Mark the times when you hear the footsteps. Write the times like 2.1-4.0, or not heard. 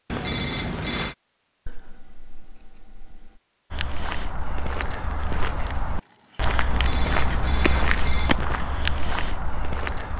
3.7-10.1.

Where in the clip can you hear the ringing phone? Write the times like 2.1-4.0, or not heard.
0.1-1.1, 6.7-8.4.